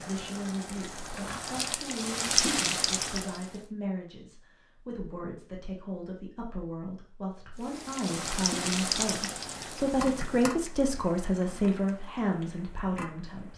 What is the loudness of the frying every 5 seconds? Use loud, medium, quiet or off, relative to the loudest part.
loud, loud, medium.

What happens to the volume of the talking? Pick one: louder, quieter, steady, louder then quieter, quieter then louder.
louder.